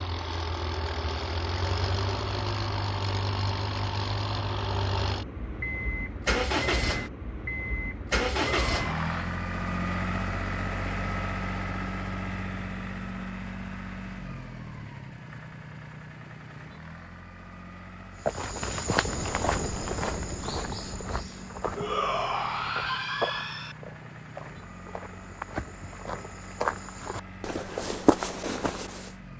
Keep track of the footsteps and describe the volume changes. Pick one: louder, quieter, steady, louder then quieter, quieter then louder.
quieter then louder.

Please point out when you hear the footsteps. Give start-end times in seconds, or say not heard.
18.2-29.1.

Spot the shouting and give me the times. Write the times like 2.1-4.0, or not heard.
8.4-9.3, 21.8-23.8.